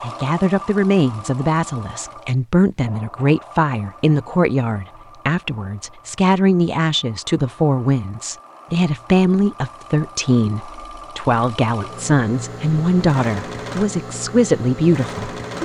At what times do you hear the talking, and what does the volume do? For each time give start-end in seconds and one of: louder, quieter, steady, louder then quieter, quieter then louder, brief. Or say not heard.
0.0-15.6 steady.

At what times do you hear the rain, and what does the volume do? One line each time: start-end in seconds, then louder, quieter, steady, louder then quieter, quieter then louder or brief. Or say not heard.
not heard.